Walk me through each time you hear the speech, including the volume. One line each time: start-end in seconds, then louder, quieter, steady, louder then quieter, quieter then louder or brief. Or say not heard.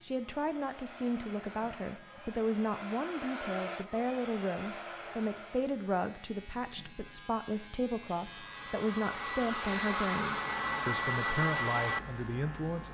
0.0-12.8 steady.